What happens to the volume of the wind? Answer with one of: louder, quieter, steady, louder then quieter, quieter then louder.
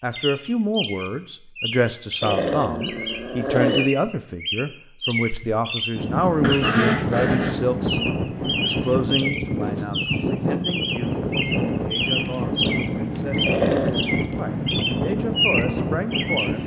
steady.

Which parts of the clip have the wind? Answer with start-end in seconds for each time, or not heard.
6.0-16.6.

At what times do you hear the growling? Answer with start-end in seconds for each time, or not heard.
2.2-3.9, 6.4-7.7, 13.4-14.1.